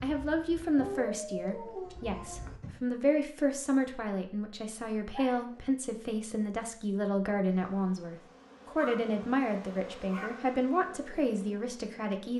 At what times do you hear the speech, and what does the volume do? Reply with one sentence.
The speech can be heard from 0.0 to 12.3 s, at a steady volume.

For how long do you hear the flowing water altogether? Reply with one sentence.
You can't hear the flowing water here.